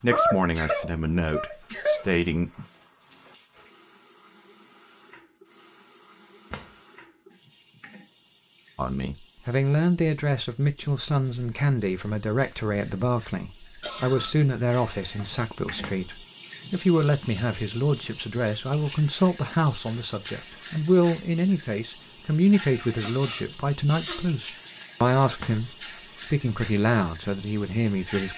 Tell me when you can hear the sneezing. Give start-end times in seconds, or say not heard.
0.1-2.0, 13.8-14.3, 23.0-24.3.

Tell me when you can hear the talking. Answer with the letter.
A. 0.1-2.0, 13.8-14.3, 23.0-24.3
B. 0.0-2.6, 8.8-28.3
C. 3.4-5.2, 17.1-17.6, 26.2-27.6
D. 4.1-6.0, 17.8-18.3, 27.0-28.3
B.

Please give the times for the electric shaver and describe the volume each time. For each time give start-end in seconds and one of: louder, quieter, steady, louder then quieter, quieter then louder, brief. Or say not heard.
not heard.